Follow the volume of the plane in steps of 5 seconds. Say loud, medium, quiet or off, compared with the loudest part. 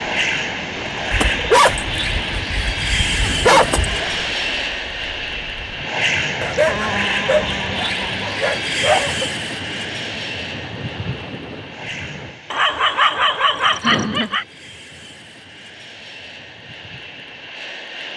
loud, loud, medium, quiet.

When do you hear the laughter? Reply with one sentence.
You can hear the laughter from 2.9 to 4.2 s, from 6.5 to 8.4 s and from 13.6 to 14.3 s.